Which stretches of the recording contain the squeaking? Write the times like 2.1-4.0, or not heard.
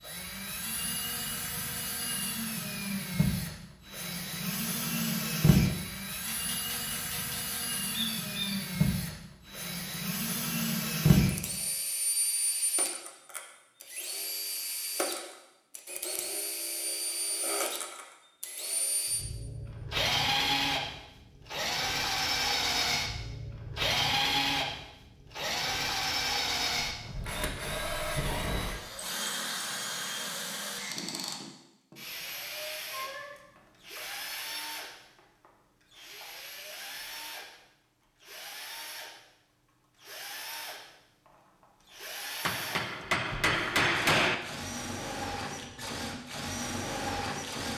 7.9-8.6.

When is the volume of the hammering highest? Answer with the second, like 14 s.
44 s.